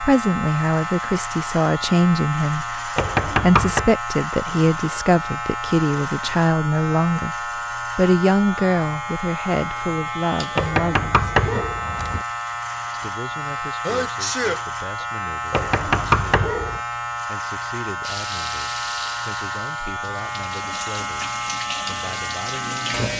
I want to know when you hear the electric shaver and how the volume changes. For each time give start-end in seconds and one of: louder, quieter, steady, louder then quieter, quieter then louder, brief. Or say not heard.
0.0-23.1 steady.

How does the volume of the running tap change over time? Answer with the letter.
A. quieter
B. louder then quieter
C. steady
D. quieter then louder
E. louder
D.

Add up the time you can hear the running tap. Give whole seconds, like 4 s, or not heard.
5 s.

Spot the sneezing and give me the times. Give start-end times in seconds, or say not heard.
13.4-15.1.